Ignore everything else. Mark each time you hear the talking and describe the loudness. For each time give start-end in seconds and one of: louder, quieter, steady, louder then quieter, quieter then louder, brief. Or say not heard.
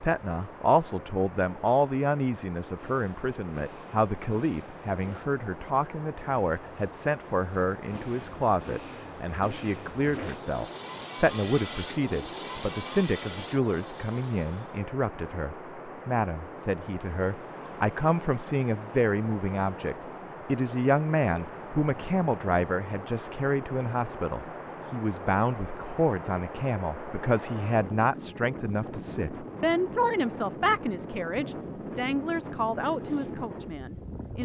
0.0-34.4 steady.